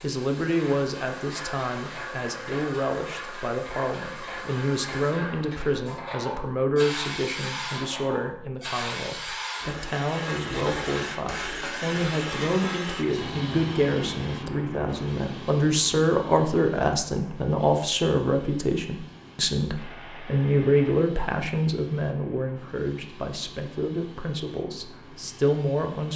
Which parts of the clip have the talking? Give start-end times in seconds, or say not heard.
0.0-26.1.